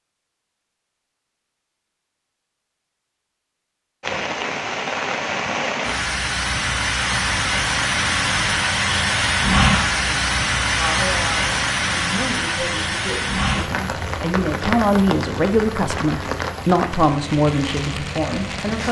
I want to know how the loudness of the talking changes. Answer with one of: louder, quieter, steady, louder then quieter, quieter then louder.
louder.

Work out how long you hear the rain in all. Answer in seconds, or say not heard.
15 s.